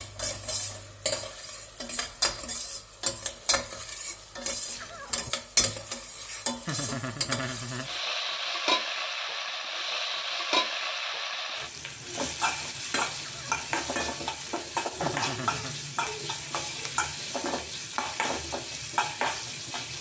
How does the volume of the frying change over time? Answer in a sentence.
The loudness of the frying stays about the same.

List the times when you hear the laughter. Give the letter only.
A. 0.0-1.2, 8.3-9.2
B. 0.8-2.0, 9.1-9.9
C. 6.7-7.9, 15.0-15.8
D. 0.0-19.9
C.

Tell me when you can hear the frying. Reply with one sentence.
You can hear the frying from 0.0 to 19.9 s.